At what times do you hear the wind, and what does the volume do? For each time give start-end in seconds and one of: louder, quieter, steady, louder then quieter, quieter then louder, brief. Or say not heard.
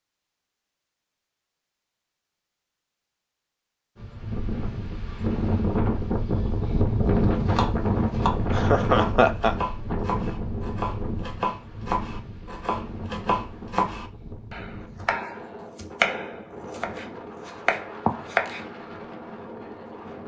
4.0-20.2 quieter.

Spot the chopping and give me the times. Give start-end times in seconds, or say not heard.
7.2-18.6.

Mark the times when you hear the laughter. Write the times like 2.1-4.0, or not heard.
8.5-9.6.